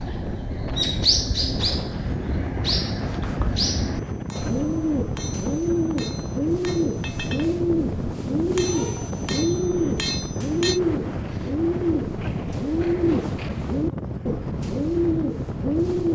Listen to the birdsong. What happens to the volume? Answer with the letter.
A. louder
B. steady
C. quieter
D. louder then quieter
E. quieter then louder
B.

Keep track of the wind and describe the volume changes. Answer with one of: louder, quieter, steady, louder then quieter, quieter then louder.
steady.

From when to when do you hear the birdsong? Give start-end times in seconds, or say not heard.
0.0-16.1.